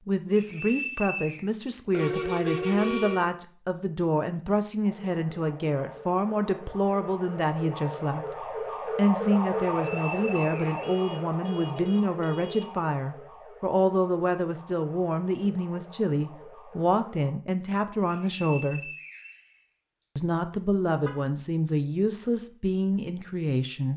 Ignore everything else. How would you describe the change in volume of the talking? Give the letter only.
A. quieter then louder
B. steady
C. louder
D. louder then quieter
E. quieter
B.